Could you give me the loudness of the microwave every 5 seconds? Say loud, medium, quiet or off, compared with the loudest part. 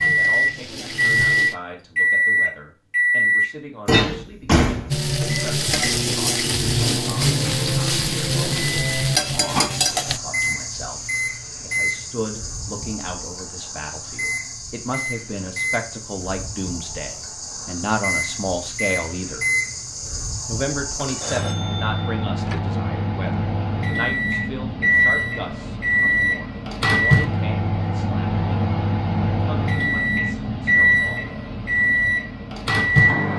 loud, medium, medium, medium, medium, loud, loud.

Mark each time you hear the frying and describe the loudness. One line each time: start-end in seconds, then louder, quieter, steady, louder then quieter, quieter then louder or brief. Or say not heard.
0.0-1.6 brief
4.9-10.2 steady.